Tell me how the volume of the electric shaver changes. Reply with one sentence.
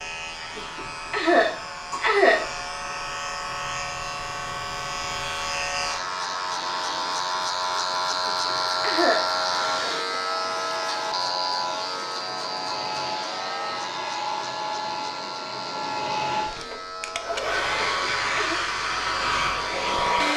The loudness of the electric shaver goes up, then down.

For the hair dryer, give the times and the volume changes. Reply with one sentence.
The hair dryer can be heard from 0.0 to 20.3 s, getting louder.